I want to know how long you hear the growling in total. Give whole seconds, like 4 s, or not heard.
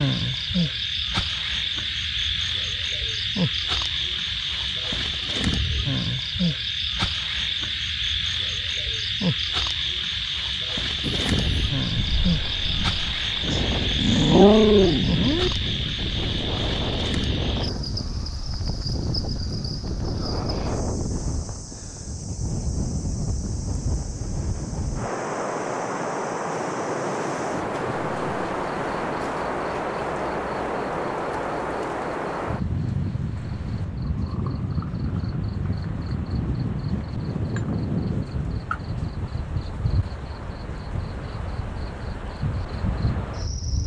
2 s.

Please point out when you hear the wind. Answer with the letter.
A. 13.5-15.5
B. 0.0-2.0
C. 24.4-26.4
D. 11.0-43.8
D.